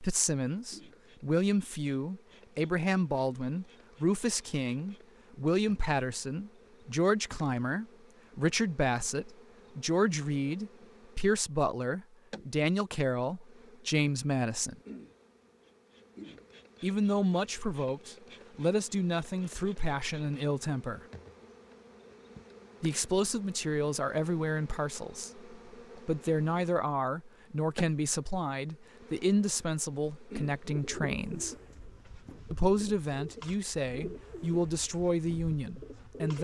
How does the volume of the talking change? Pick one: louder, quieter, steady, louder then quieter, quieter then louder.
steady.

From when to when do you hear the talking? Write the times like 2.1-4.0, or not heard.
0.0-14.8, 16.8-21.0, 22.8-31.6, 32.5-36.3.